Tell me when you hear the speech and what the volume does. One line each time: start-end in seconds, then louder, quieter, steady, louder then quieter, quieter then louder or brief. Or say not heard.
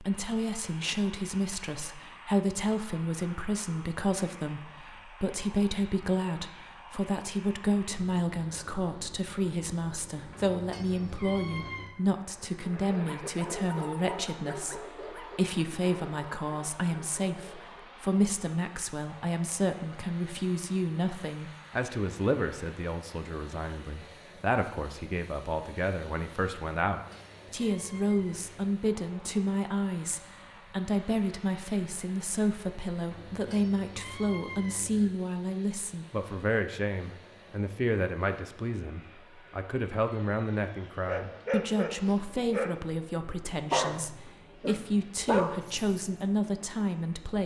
0.0-47.4 steady.